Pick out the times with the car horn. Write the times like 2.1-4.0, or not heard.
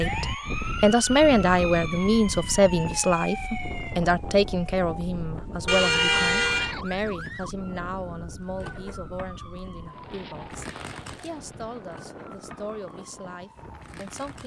5.7-6.8.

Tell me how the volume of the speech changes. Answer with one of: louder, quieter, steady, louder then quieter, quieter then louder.
quieter.